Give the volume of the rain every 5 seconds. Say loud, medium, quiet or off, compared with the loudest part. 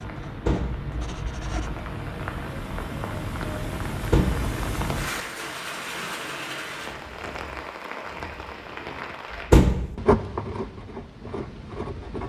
loud, loud, off.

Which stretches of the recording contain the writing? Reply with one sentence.
The writing can be heard from 0.0 to 1.9 s and from 9.3 to 12.2 s.